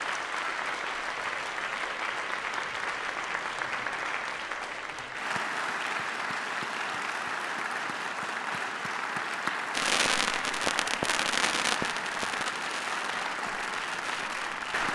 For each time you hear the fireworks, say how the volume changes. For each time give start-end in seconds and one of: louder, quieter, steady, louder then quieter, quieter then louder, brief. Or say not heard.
9.7-14.8 quieter.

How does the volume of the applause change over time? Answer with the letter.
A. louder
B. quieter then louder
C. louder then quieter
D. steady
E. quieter
D.